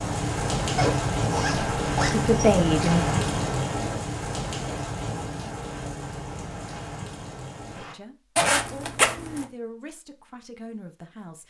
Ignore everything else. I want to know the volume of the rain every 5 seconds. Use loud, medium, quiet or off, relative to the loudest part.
loud, medium, off.